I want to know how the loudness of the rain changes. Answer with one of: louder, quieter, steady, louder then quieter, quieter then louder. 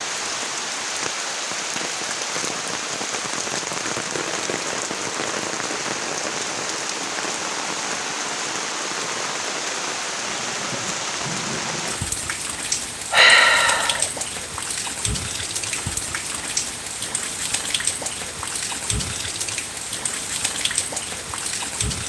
steady.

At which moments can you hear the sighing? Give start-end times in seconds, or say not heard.
13.1-14.1.